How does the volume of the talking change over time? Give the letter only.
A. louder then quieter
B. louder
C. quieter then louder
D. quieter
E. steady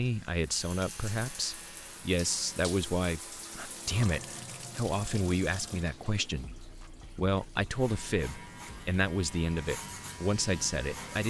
E.